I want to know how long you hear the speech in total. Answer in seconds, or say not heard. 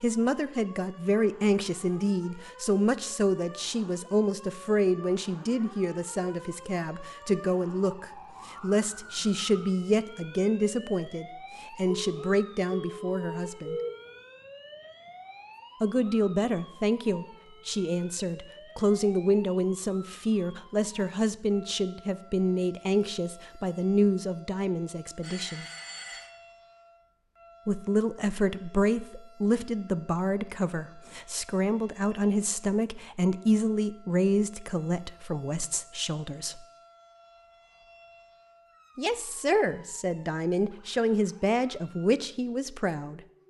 37 s.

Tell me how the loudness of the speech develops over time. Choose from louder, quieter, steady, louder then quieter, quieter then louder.
steady.